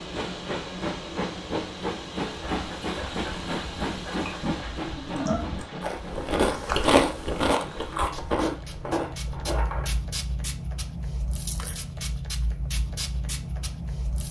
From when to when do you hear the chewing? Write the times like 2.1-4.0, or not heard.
2.4-9.9.